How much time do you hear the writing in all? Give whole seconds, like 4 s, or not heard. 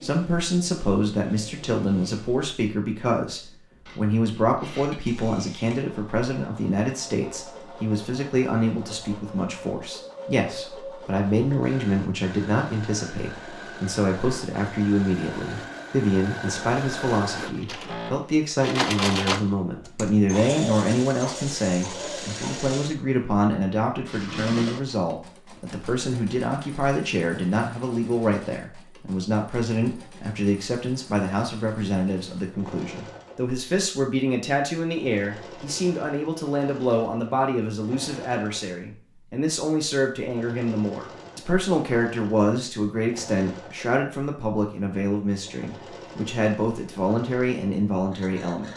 not heard.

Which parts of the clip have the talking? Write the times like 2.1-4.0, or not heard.
0.0-48.7.